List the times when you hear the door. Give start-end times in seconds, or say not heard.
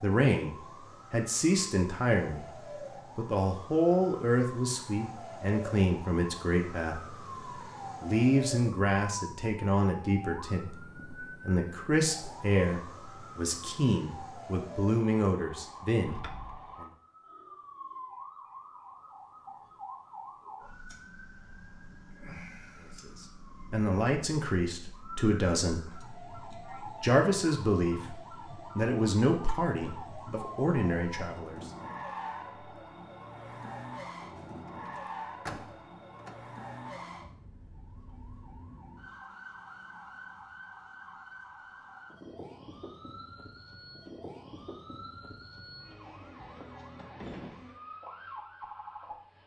16.0-16.8, 34.4-36.4.